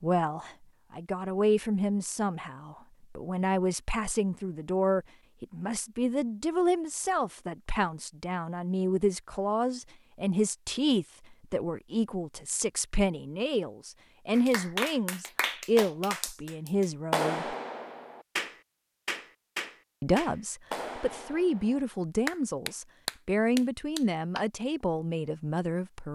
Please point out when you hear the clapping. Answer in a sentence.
The clapping can be heard from 14.3 to 24.4 s.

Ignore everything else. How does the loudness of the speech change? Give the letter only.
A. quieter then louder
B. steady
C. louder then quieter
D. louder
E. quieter
B.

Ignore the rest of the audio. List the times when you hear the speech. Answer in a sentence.
You can hear the speech from 0.0 to 17.6 s and from 20.0 to 26.0 s.